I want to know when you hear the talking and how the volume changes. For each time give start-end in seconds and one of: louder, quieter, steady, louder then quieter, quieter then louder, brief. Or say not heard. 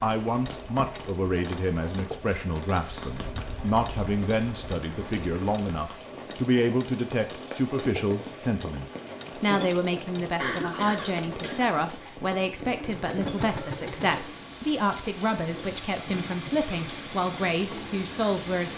0.0-18.7 steady.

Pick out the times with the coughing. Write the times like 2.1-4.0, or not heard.
10.3-12.1.